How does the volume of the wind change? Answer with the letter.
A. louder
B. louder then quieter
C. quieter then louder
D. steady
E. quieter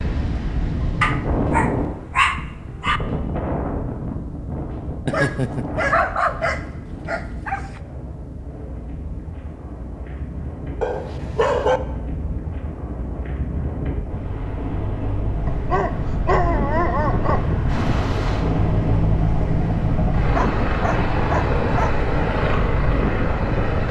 C.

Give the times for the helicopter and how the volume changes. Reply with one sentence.
The helicopter can be heard from 17.6 to 23.8 s, at a steady volume.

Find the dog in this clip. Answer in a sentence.
You can hear the dog from 1.0 to 3.0 s, from 5.0 to 7.8 s, from 10.8 to 11.8 s, from 15.4 to 17.5 s and from 20.4 to 21.9 s.